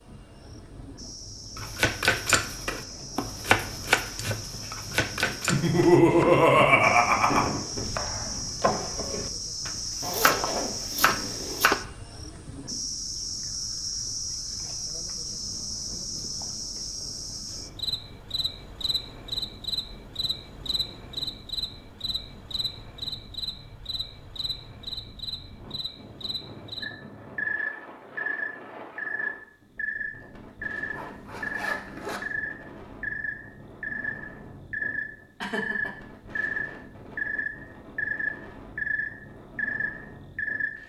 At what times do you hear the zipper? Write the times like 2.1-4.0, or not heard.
10.0-11.8, 30.9-32.2.